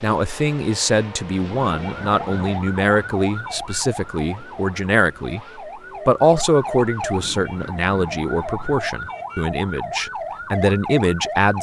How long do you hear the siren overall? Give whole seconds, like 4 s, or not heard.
10 s.